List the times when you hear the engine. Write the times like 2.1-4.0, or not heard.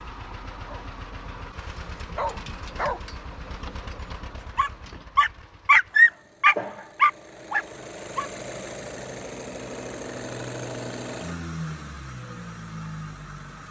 0.0-13.6.